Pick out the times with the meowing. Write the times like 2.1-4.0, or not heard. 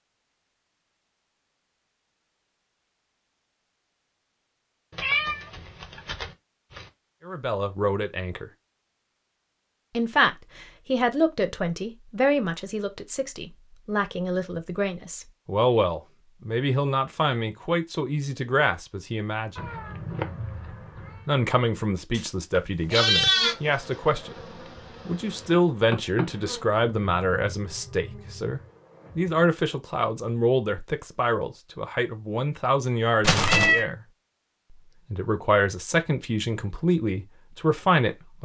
4.9-6.9, 19.6-21.2, 33.2-33.9.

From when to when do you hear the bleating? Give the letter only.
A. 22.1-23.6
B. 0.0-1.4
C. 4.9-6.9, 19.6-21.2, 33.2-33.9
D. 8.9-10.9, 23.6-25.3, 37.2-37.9
A.